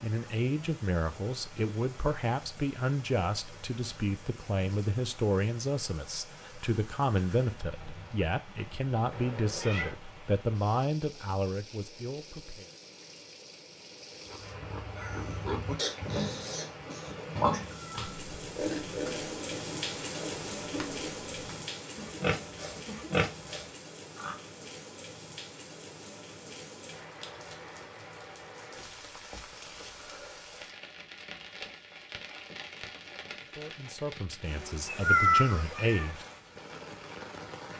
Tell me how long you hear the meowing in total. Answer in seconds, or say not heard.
4 s.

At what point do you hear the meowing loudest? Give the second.
35 s.